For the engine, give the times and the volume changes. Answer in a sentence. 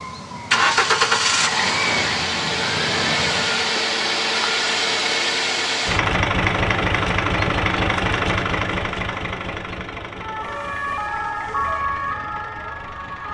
You can hear the engine from 0.0 to 13.2 s, getting quieter.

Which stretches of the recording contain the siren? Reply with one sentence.
The siren can be heard from 0.0 to 3.8 s and from 10.2 to 13.2 s.